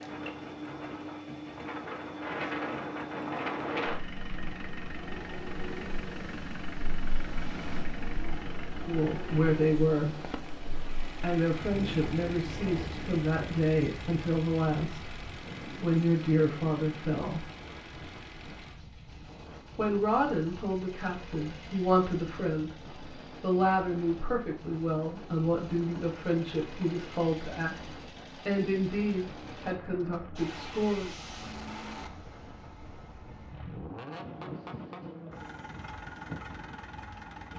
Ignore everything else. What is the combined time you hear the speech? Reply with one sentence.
The speech can be heard for 19 seconds in total.